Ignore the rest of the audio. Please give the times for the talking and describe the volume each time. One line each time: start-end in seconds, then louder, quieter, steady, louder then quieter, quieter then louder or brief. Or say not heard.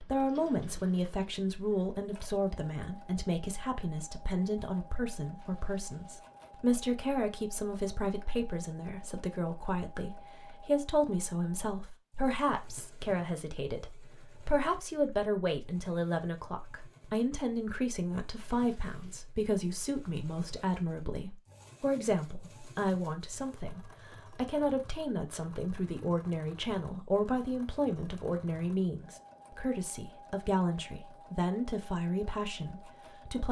0.0-33.4 steady.